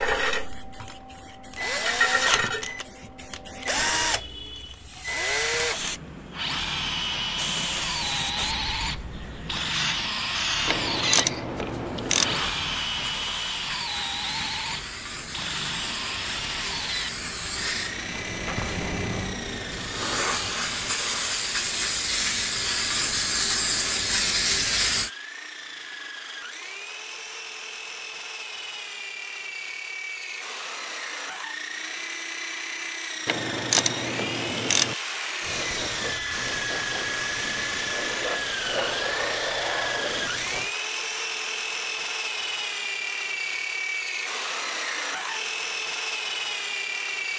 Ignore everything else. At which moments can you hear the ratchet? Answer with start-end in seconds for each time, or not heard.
10.7-12.3, 33.2-35.0.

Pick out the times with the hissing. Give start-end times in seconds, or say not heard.
0.0-25.1, 35.4-40.8.